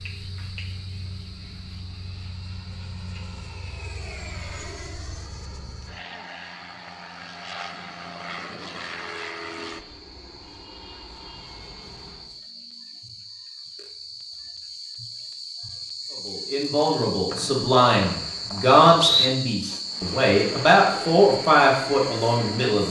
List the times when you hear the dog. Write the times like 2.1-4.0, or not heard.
not heard.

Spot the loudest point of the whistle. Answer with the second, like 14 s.
19 s.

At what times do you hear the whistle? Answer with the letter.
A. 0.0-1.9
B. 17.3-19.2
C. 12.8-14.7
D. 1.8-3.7
B.